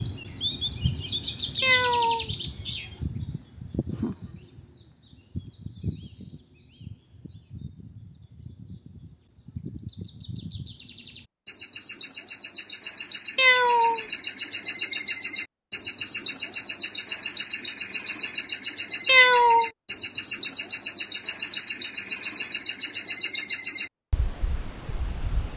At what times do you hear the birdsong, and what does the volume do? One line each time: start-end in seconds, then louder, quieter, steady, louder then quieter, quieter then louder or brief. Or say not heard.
0.0-25.5 quieter then louder.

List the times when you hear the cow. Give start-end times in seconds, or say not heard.
not heard.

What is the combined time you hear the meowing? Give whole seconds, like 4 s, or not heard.
3 s.